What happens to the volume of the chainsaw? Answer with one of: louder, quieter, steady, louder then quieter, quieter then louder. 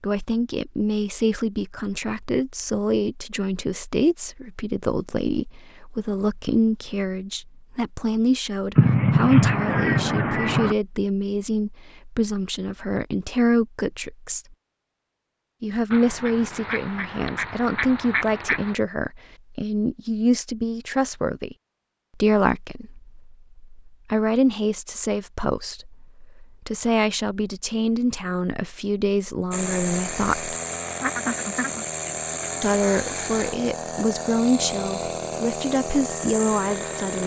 steady.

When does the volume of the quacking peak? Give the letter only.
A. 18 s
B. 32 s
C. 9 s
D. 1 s
C.